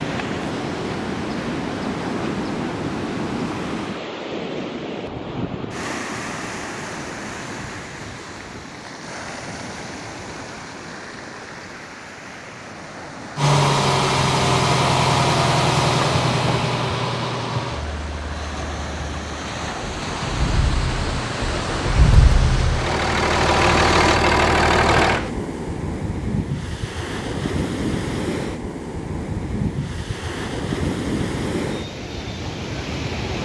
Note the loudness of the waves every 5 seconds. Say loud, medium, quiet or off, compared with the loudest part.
loud, medium, medium, medium, loud, loud, loud.